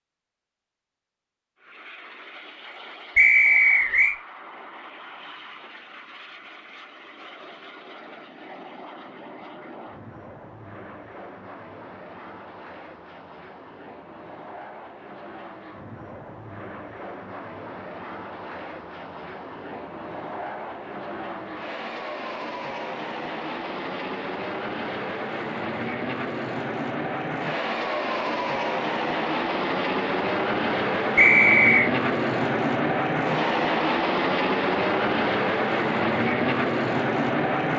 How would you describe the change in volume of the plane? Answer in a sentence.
The loudness of the plane goes up.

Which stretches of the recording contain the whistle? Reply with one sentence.
The whistle can be heard from 3.1 to 4.2 s and from 31.1 to 31.9 s.